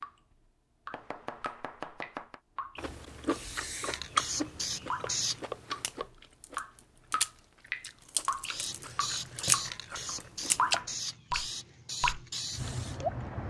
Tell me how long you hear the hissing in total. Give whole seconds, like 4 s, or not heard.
7 s.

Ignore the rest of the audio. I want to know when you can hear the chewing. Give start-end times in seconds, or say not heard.
2.8-10.8.